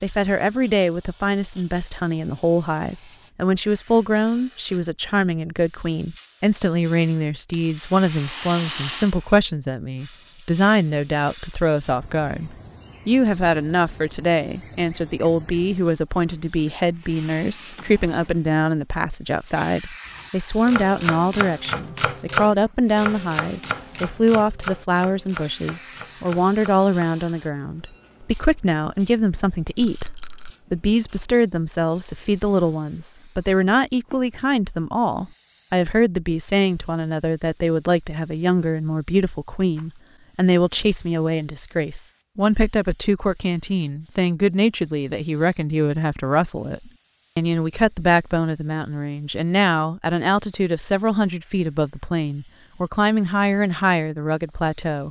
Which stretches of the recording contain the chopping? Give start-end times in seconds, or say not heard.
20.1-27.1.